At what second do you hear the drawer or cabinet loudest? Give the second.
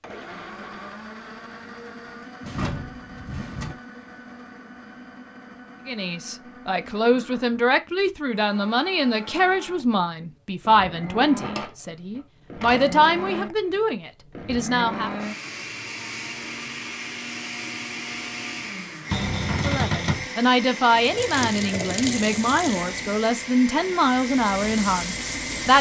20 s.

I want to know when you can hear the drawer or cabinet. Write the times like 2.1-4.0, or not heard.
2.4-3.8, 11.2-12.9, 19.1-20.2.